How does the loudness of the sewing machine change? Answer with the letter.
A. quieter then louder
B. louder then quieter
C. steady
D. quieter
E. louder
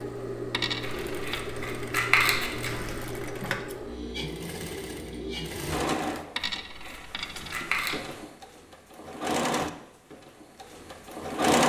A.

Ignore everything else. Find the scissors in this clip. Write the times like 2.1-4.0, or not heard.
0.8-2.9, 6.5-8.0.